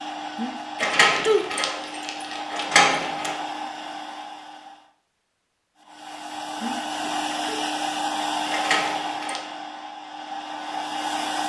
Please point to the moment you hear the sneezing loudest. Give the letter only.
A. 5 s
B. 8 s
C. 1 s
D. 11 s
C.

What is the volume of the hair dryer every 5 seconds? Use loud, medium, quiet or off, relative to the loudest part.
medium, loud, loud.